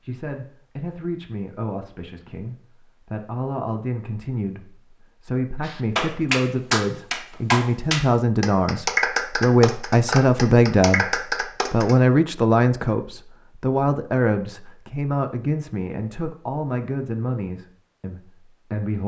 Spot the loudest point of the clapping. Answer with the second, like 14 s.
9 s.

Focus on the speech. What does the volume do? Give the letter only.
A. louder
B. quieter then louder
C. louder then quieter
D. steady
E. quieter
C.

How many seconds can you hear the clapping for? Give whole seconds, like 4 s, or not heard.
6 s.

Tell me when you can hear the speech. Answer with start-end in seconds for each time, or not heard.
0.0-19.0.